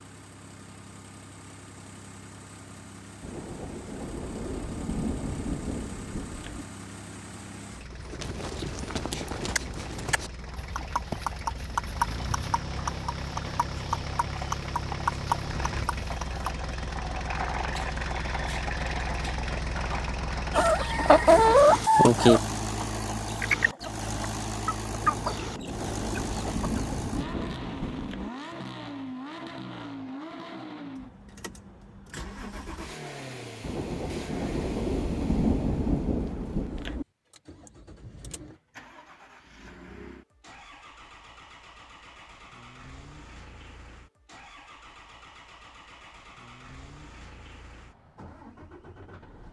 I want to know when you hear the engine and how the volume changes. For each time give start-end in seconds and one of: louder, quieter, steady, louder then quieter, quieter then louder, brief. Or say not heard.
0.0-49.4 louder then quieter.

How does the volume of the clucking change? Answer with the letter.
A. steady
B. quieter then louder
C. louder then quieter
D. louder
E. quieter
E.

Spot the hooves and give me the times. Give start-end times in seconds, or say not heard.
7.9-16.5.